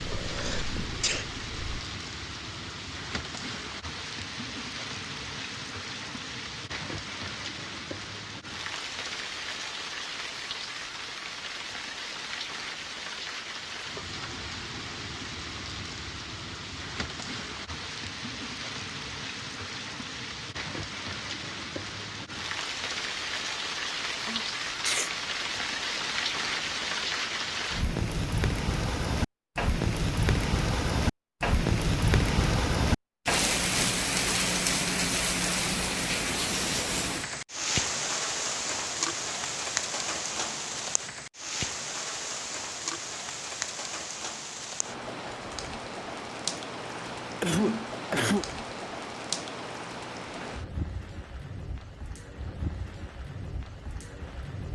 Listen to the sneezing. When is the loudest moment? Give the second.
48 s.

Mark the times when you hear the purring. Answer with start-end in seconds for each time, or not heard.
0.0-1.9.